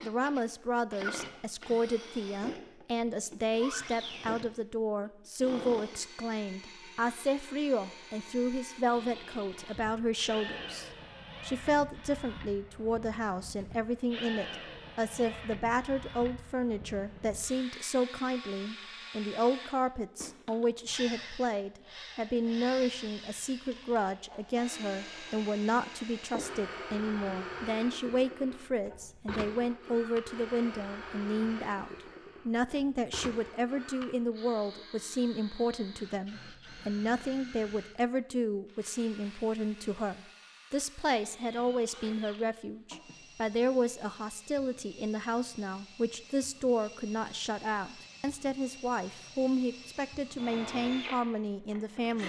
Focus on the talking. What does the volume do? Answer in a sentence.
The loudness of the talking stays about the same.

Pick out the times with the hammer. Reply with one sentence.
The hammer can't be heard in this clip.